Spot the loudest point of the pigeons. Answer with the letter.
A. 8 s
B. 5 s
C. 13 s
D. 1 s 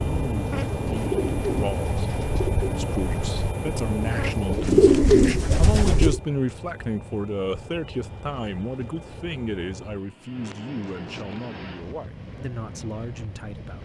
B.